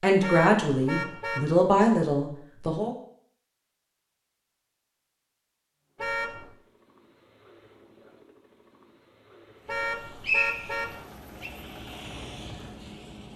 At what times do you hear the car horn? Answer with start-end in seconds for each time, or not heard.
0.2-1.5, 6.0-6.5, 9.7-10.9.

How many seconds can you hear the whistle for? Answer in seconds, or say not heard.
2 s.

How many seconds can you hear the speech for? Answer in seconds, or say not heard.
3 s.